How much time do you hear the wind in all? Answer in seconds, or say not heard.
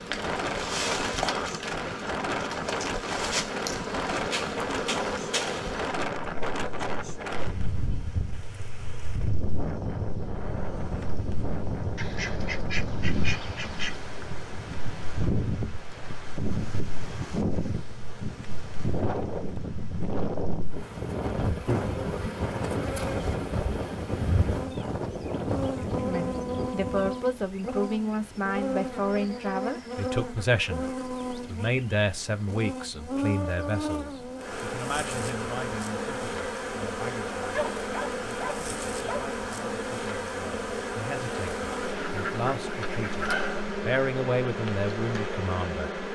27 s.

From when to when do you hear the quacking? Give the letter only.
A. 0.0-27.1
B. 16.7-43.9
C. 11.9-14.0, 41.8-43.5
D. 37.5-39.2
C.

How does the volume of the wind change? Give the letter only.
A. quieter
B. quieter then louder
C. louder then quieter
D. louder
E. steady
E.